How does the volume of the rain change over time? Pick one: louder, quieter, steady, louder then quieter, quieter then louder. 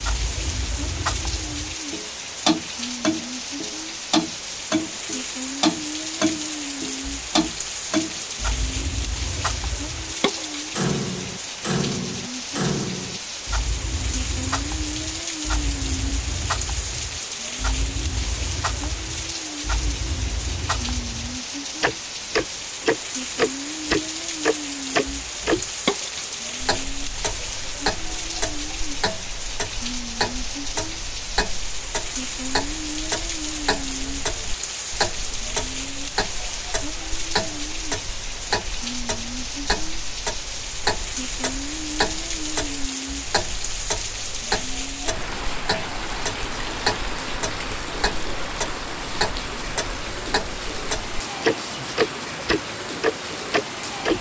steady.